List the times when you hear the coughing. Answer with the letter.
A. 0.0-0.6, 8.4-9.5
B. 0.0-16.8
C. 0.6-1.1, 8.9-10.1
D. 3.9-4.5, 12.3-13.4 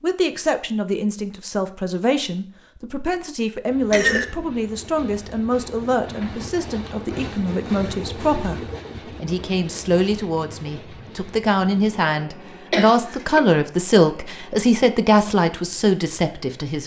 D.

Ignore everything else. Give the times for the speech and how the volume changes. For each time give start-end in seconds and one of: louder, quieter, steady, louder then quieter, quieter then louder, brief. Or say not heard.
0.0-16.8 louder.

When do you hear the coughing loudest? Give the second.
4 s.